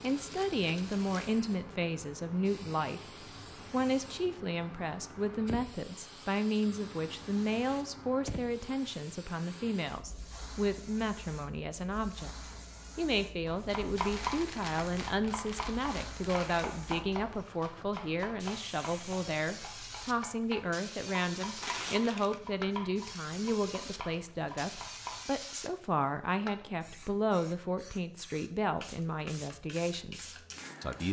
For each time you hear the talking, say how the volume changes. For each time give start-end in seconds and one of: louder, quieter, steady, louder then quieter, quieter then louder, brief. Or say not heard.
0.0-31.0 steady.